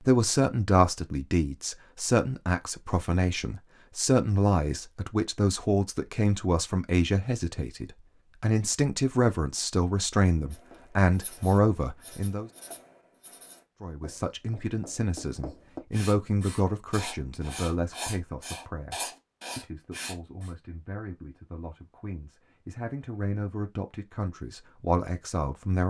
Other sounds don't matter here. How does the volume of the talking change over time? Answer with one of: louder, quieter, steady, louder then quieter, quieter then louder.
quieter.